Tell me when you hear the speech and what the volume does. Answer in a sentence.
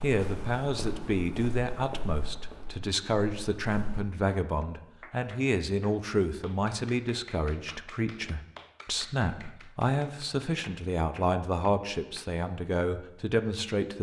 The speech can be heard from 0.0 to 13.9 s, at a steady volume.